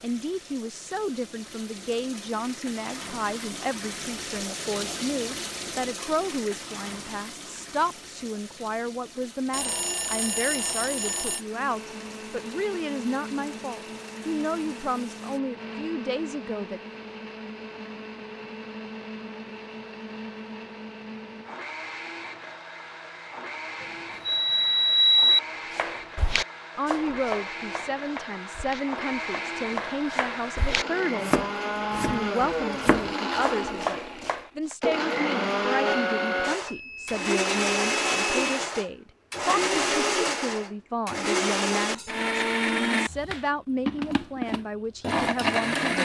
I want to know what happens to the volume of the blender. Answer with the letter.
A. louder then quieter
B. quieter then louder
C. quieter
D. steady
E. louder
E.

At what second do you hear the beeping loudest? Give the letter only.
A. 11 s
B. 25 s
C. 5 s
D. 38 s
B.